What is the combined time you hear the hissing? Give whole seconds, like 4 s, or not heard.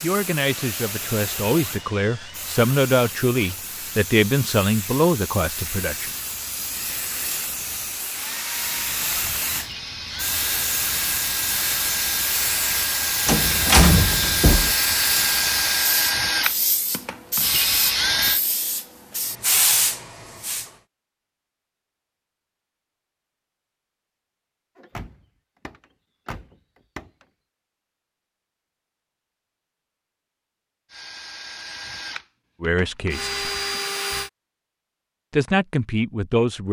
21 s.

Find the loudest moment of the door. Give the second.
14 s.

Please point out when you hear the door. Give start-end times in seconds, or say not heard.
13.2-14.8, 24.8-27.1.